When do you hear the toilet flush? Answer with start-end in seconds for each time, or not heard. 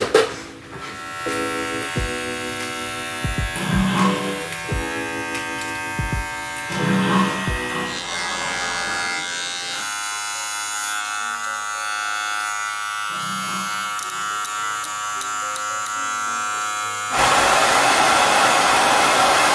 3.5-4.5, 6.7-9.1, 13.1-15.6.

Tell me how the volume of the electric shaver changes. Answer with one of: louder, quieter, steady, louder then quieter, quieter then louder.
steady.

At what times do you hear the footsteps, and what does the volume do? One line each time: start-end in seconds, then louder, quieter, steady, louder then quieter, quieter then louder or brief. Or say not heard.
not heard.